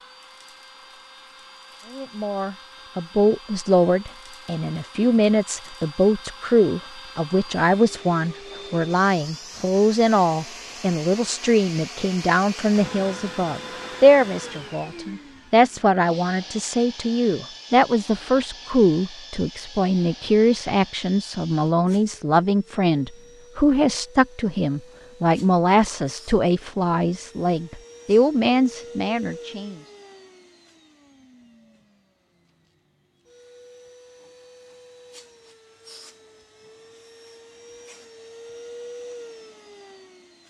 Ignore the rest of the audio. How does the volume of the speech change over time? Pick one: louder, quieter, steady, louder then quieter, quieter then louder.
steady.